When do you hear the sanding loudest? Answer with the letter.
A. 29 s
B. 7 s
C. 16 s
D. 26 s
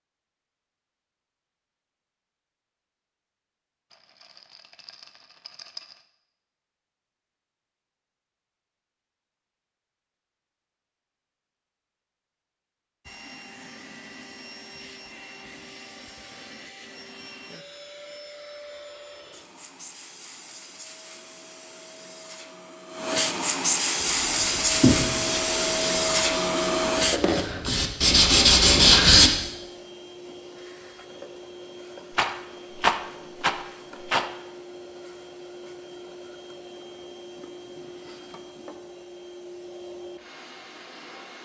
A.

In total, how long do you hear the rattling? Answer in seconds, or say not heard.
4 s.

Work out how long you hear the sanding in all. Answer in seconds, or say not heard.
5 s.